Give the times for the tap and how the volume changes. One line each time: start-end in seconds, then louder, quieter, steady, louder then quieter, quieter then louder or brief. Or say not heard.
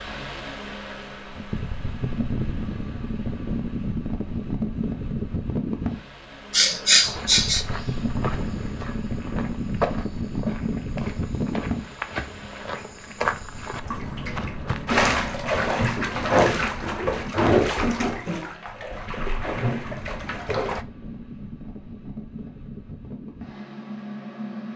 13.8-20.9 quieter.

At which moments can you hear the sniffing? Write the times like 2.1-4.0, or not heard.
6.5-7.7.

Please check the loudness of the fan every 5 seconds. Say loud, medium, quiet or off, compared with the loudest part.
loud, loud, loud, medium, medium.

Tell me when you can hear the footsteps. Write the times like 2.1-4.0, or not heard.
7.0-15.4.